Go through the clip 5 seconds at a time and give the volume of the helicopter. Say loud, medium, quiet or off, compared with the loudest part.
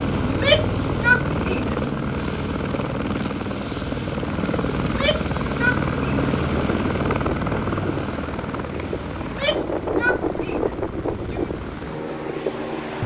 loud, loud, medium.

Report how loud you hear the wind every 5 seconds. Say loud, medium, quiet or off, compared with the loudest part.
off, loud, loud.